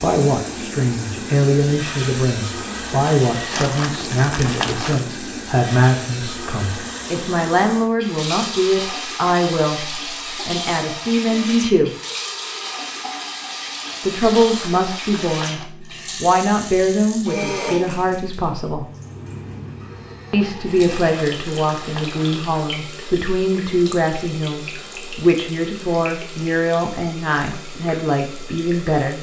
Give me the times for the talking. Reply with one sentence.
The talking can be heard from 0.0 to 11.9 s, from 14.0 to 18.9 s and from 20.3 to 29.1 s.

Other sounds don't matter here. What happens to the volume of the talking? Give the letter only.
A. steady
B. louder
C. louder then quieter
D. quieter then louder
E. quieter
A.